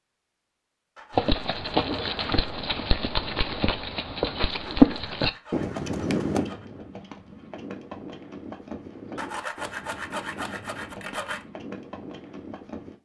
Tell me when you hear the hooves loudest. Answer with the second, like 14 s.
5 s.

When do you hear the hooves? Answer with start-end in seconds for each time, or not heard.
1.1-12.9.